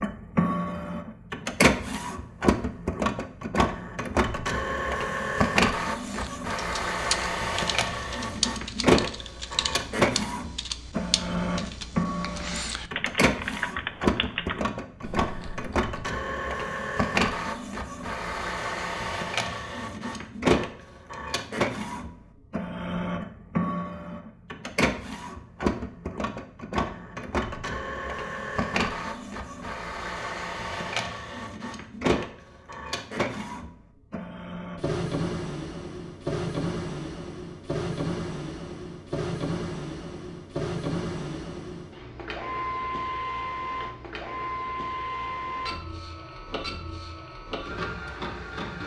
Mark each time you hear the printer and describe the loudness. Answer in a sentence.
The printer can be heard from 0.0 to 48.8 s, getting quieter.